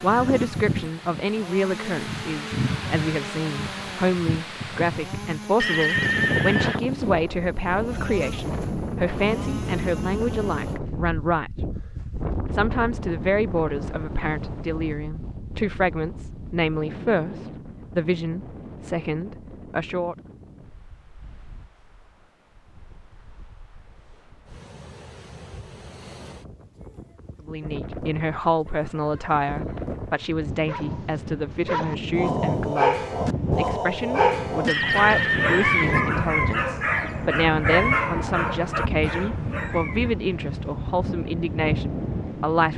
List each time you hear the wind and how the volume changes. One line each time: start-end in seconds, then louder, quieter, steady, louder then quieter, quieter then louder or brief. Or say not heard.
0.0-42.7 quieter then louder.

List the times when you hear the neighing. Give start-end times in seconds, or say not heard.
5.6-6.8, 34.6-36.0.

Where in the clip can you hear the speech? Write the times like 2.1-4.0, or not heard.
0.0-11.5, 12.5-20.1, 27.4-42.7.